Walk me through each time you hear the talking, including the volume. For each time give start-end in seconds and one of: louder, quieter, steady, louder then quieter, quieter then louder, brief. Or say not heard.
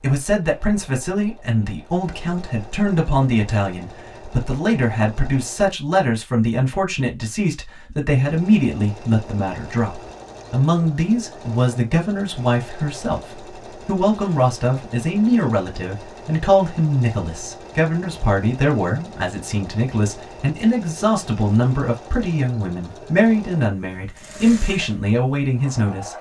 0.0-26.1 steady.